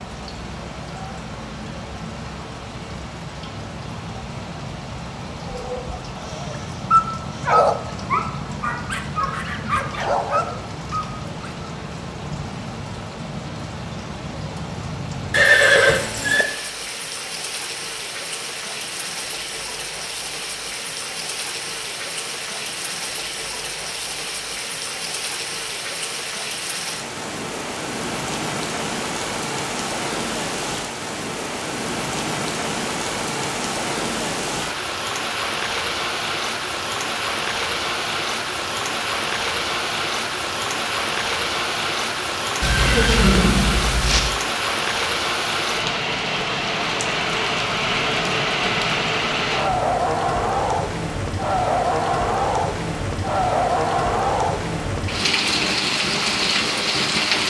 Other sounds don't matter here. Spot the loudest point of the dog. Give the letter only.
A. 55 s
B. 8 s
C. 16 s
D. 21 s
B.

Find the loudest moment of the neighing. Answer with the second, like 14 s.
16 s.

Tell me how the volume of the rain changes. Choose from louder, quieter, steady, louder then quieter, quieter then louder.
louder.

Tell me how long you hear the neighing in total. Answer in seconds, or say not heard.
3 s.